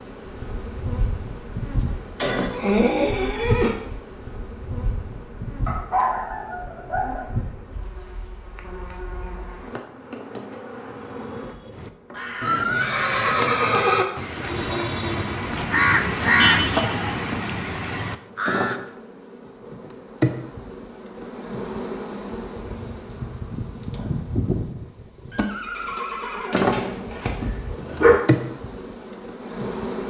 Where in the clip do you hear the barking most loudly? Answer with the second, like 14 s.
28 s.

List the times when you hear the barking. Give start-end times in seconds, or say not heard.
5.7-7.2, 26.6-28.1.